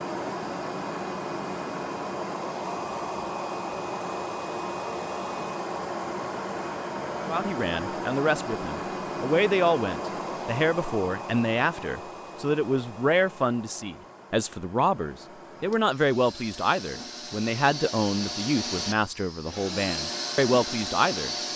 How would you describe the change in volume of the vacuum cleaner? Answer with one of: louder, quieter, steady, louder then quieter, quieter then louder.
quieter then louder.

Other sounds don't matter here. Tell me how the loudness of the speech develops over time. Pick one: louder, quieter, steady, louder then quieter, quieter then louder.
steady.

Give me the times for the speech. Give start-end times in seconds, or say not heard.
7.2-21.3.